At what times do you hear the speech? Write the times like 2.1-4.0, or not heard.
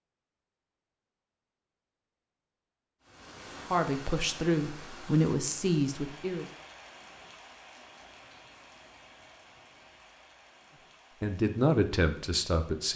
3.7-6.5, 11.2-12.9.